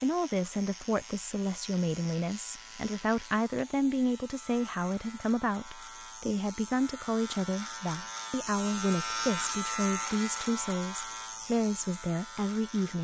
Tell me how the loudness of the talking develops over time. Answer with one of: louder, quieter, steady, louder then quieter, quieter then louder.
steady.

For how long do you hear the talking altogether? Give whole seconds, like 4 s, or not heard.
13 s.